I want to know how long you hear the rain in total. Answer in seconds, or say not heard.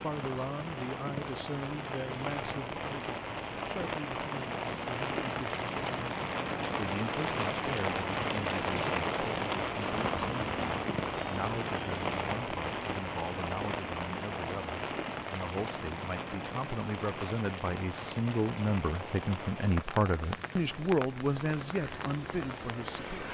23 s.